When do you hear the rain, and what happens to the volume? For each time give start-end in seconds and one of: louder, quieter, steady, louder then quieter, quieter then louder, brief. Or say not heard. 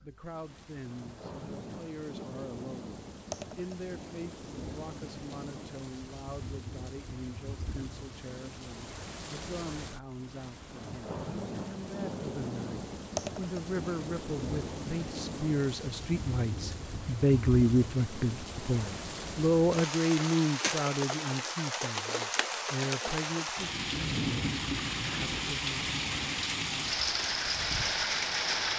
0.0-28.7 louder.